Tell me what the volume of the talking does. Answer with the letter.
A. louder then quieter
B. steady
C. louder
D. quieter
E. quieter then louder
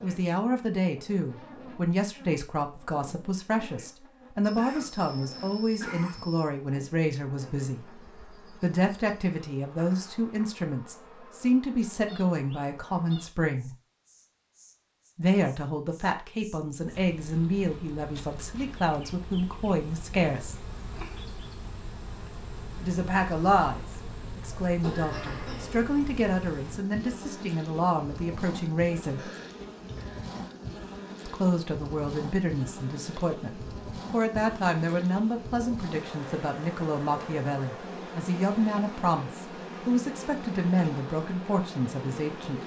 B.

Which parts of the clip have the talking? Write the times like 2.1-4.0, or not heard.
0.0-7.8, 8.6-13.7, 15.2-20.6, 22.8-29.3, 31.2-42.6.